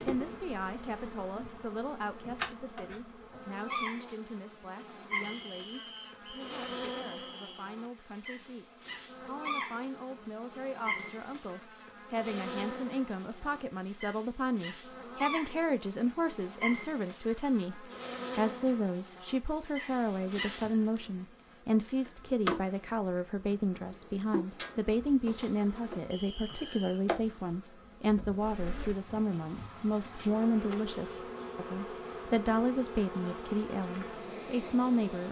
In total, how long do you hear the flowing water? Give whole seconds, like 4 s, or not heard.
not heard.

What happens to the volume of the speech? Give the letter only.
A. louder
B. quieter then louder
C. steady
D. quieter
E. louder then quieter
A.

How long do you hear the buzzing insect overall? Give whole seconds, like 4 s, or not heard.
35 s.